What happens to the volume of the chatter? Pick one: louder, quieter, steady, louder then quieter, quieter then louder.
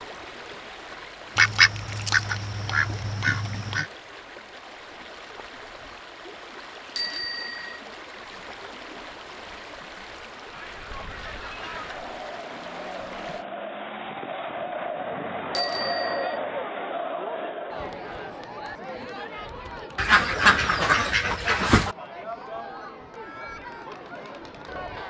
louder then quieter.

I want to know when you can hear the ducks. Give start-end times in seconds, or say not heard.
1.4-3.9, 19.9-21.9.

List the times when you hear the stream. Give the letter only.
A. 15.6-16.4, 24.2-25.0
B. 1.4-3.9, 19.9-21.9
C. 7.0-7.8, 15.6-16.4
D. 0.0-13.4
D.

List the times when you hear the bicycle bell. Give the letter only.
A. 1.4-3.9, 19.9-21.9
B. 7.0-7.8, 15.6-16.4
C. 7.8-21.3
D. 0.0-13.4
B.